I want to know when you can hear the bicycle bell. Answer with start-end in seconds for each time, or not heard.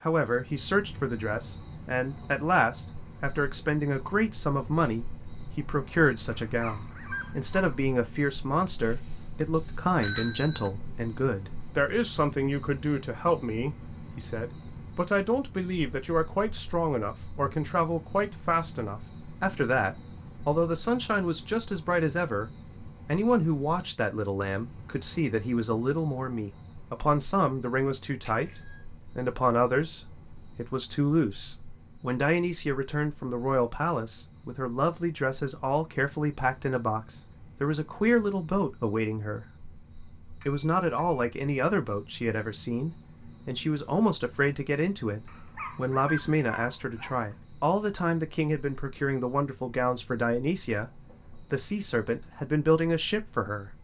8.8-10.7, 28.2-28.9, 40.4-41.3.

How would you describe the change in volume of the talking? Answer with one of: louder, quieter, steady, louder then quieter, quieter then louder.
steady.